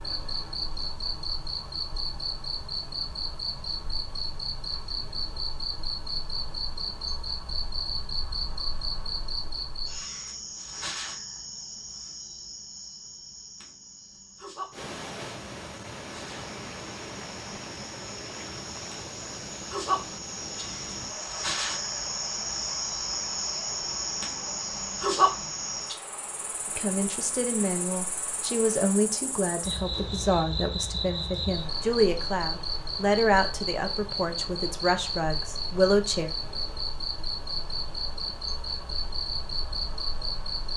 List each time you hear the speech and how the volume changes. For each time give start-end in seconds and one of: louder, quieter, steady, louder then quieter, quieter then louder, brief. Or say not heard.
26.8-36.3 steady.